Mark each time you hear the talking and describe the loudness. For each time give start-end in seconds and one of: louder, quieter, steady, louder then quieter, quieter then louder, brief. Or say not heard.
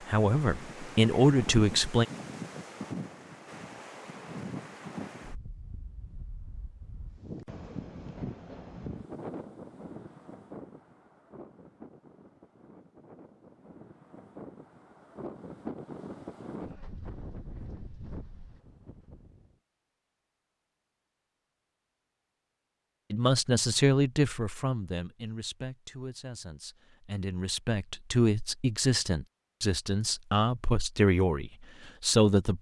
0.1-2.0 brief
23.1-32.5 quieter then louder.